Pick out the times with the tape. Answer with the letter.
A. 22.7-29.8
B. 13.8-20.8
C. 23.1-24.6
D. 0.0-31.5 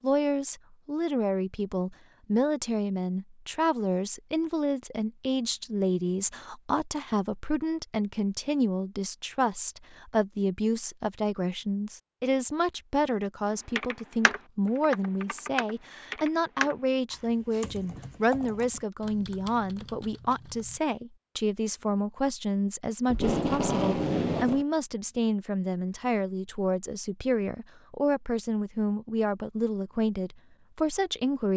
C.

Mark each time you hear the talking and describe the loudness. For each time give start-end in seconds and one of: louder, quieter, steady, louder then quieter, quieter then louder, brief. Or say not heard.
0.0-31.5 steady.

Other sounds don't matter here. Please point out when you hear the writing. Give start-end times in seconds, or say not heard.
not heard.